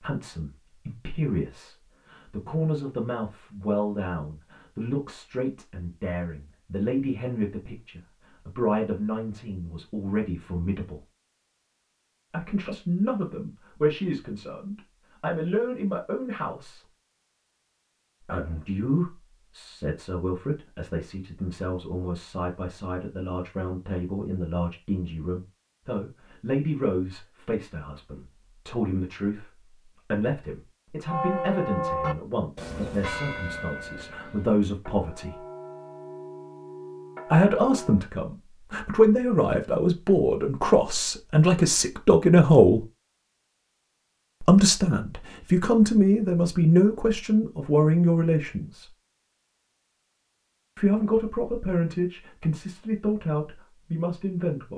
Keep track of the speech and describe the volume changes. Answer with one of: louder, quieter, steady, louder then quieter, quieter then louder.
louder.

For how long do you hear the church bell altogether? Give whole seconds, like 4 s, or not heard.
7 s.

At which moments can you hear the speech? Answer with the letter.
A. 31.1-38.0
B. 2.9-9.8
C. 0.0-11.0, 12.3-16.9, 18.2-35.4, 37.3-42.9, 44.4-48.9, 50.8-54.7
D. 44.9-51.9
C.